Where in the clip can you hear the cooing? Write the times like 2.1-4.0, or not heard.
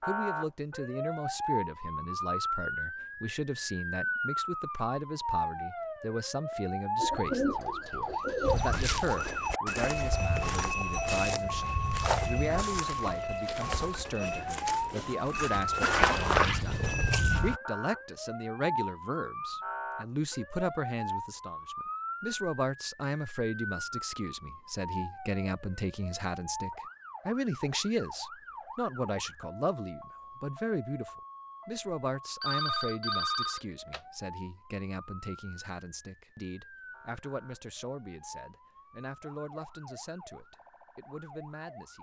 7.0-8.6.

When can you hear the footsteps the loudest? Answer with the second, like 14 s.
16 s.